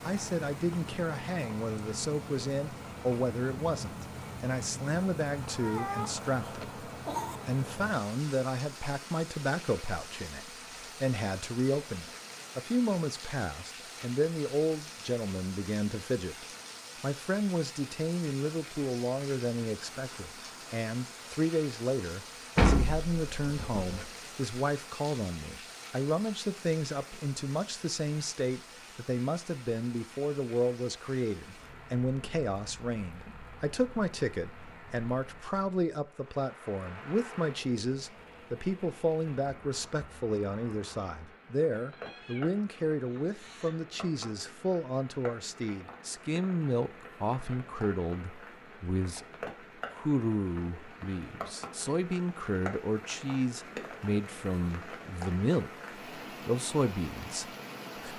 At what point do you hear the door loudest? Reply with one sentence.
The loudest moment of the door is at 23 seconds.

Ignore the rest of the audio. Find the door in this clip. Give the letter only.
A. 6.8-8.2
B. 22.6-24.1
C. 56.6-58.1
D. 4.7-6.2
B.